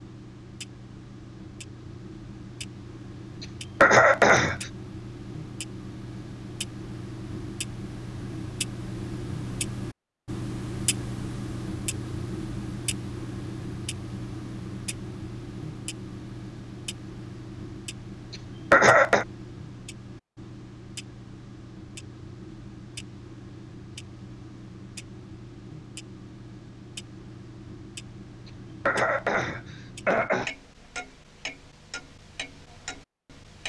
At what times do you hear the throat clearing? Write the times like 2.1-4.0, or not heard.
3.4-4.7, 18.3-19.2, 28.4-30.5.